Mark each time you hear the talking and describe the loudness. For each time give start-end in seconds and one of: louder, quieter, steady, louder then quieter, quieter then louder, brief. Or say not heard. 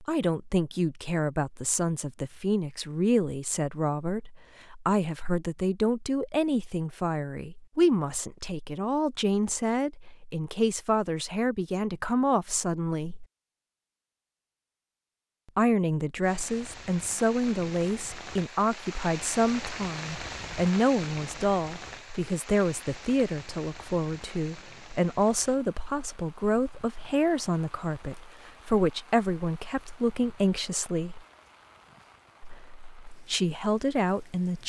0.0-13.2 steady
15.6-31.2 steady
32.4-34.6 brief.